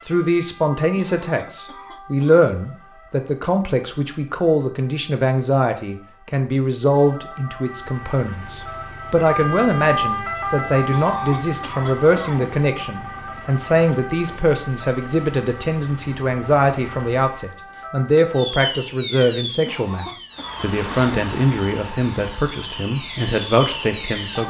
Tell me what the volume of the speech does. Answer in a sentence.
The volume of the speech stays about the same.